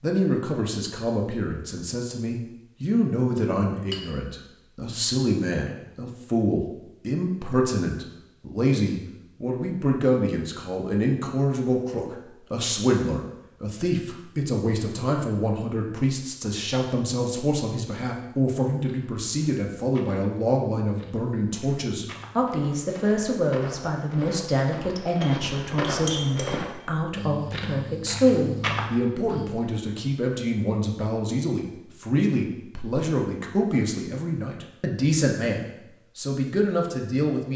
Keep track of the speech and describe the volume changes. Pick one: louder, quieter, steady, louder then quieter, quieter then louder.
steady.